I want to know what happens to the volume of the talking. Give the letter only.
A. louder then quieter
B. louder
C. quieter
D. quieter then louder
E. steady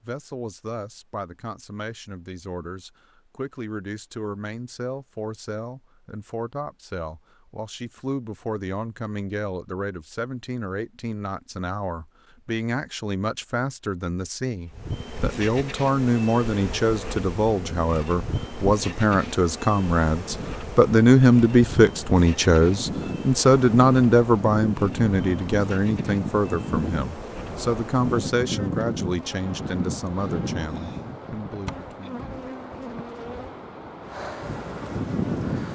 A.